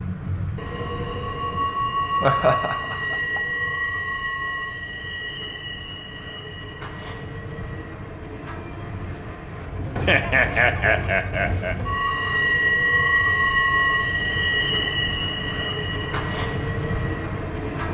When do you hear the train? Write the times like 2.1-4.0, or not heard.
0.0-17.8.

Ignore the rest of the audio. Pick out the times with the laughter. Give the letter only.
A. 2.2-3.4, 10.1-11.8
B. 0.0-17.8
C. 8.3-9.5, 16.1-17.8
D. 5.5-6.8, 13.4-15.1
A.